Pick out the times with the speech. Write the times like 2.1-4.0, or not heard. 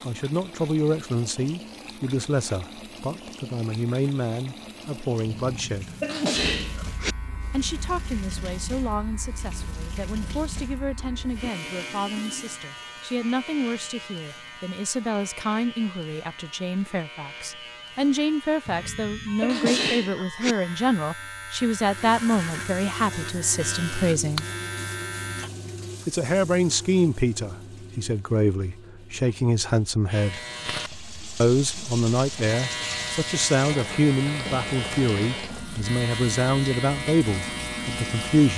0.1-6.0, 7.5-24.4, 26.1-30.4, 31.4-38.5.